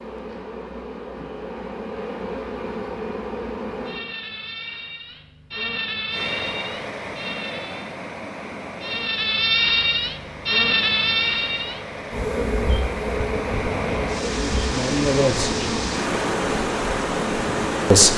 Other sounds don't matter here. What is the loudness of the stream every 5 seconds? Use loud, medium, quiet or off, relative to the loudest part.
off, medium, medium, loud.